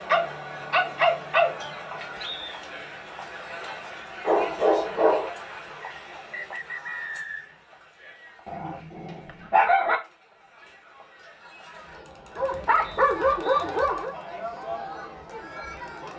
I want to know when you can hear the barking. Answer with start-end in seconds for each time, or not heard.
0.1-1.6, 4.2-5.3, 8.4-10.0, 12.3-14.2.